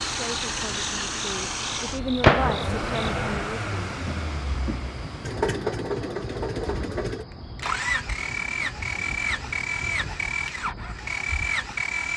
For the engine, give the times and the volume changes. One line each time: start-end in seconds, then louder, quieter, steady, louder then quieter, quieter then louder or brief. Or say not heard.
0.0-12.1 steady.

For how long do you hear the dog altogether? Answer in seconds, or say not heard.
not heard.